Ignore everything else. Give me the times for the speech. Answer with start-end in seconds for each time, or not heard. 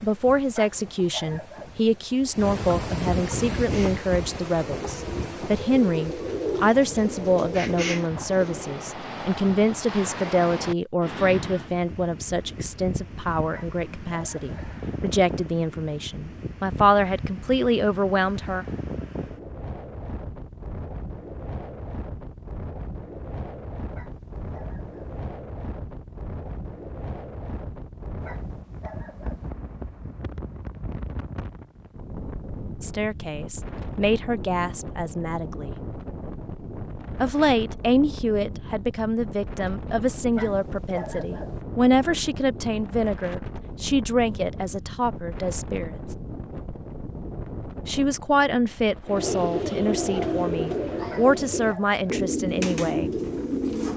0.0-18.6, 32.8-35.7, 37.2-46.1, 47.9-53.1.